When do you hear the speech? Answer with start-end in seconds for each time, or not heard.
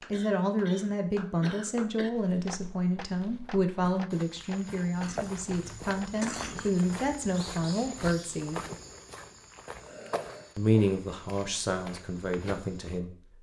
0.1-8.6, 10.6-13.1.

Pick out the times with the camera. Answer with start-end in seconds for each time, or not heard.
not heard.